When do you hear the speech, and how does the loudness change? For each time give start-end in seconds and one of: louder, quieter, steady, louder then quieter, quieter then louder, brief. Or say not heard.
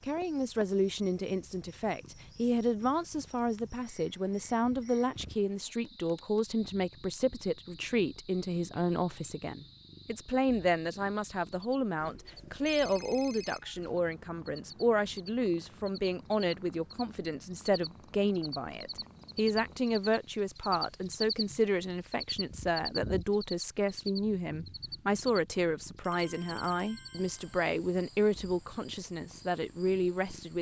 0.0-30.5 steady.